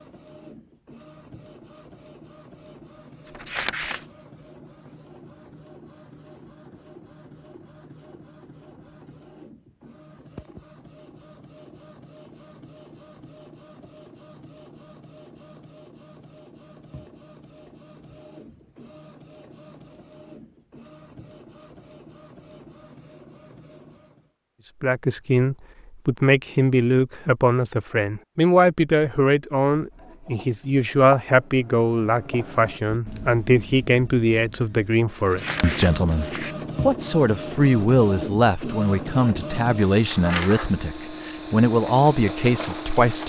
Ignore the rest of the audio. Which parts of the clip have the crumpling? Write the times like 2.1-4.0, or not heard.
3.2-4.0, 35.1-36.6.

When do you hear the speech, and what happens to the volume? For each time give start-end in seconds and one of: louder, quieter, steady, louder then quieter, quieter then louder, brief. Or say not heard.
24.8-43.2 steady.